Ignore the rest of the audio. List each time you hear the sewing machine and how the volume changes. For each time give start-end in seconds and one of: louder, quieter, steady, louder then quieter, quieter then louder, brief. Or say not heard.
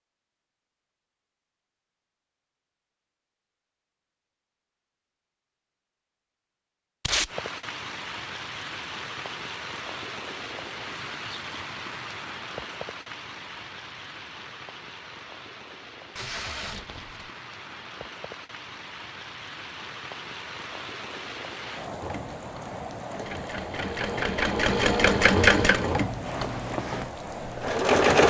22.0-28.2 louder then quieter.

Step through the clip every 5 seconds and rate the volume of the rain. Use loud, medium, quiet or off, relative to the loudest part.
off, loud, loud, medium, loud, loud.